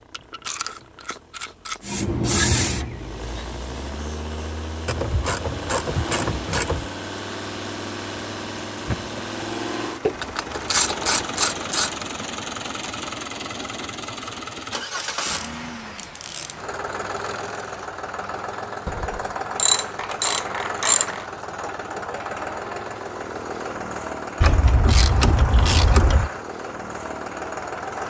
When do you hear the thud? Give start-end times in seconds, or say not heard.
8.8-9.2.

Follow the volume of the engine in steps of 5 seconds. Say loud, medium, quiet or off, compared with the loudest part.
medium, loud, loud, loud, loud, loud.